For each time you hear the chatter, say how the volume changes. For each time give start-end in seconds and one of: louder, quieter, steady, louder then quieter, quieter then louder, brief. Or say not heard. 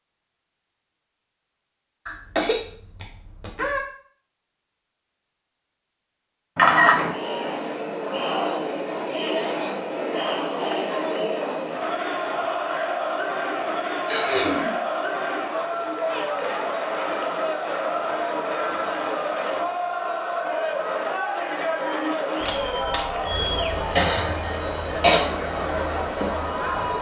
6.9-26.9 steady.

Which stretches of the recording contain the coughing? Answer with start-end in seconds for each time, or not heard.
2.0-3.8, 14.1-14.8, 23.9-25.2.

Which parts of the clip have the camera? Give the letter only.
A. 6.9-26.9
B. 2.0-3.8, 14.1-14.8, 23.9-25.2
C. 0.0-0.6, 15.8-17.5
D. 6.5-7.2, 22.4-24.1
D.